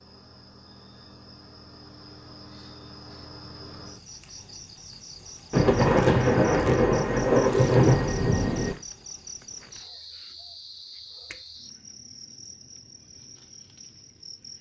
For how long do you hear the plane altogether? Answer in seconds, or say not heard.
not heard.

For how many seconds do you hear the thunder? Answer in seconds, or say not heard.
3 s.